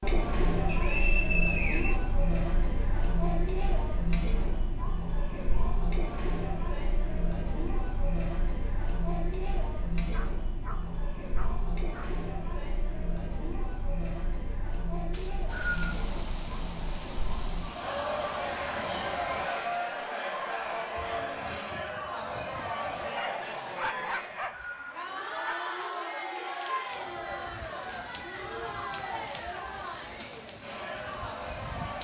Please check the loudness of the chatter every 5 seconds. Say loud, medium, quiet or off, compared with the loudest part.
loud, loud, medium, loud, loud, loud, medium.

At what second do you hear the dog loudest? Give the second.
24 s.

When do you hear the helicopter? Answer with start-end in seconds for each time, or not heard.
not heard.